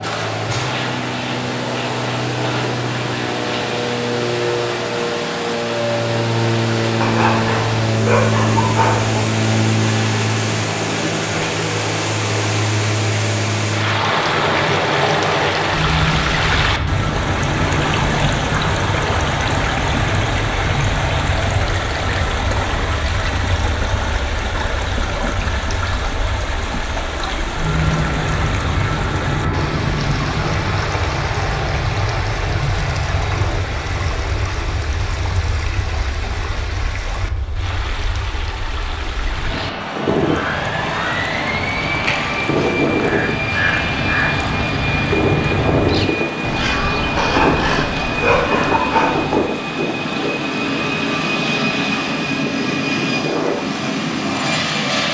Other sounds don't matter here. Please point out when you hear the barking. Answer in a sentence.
The barking can be heard from 7.0 to 9.2 s and from 47.1 to 49.4 s.